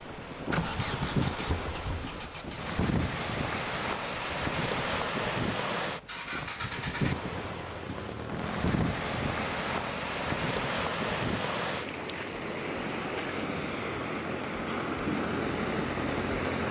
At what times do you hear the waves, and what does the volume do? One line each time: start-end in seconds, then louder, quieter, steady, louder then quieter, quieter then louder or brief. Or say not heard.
0.0-16.6 steady.